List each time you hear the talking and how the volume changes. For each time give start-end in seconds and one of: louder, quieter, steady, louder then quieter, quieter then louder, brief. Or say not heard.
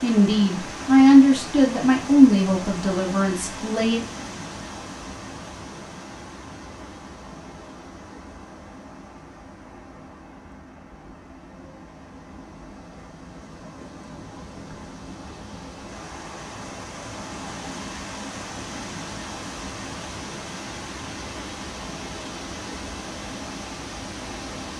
0.0-4.0 quieter.